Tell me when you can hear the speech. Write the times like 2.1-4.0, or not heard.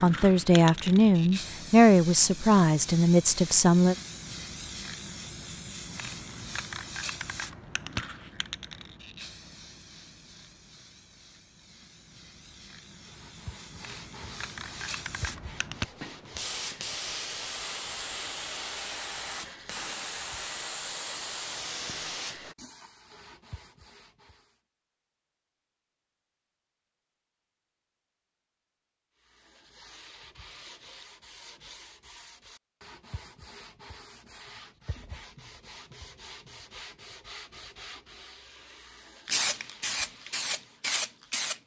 0.0-4.0.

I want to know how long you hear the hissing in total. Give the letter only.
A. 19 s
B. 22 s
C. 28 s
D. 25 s
D.